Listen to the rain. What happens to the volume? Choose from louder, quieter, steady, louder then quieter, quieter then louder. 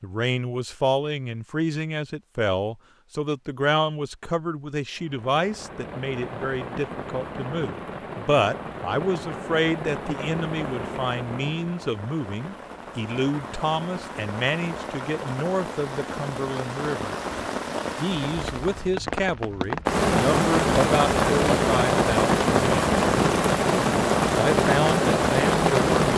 louder.